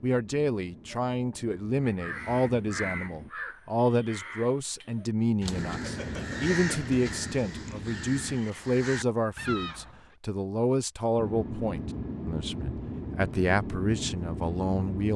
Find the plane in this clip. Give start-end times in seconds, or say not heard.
0.1-3.3, 5.5-8.4, 11.2-15.1.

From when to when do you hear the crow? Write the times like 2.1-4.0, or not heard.
1.8-10.1.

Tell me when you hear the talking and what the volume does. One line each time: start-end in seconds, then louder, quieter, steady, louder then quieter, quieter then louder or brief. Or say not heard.
0.0-15.1 steady.